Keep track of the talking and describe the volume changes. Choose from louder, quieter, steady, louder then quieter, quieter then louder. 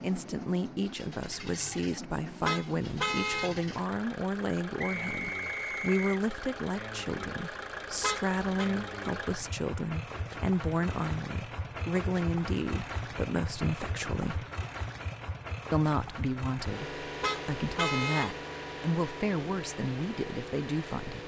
steady.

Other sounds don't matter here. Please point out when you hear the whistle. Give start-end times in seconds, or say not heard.
4.8-6.2.